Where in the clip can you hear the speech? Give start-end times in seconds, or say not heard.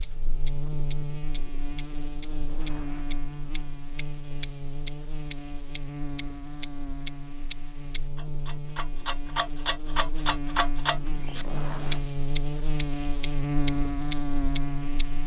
not heard.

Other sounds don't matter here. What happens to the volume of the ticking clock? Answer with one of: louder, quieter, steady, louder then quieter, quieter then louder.
louder.